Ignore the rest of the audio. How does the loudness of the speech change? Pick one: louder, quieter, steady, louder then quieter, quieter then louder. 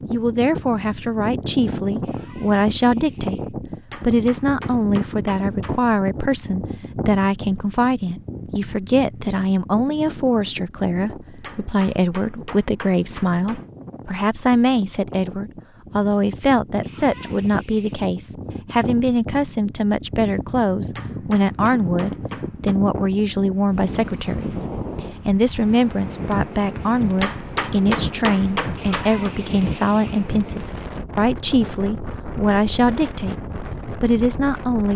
steady.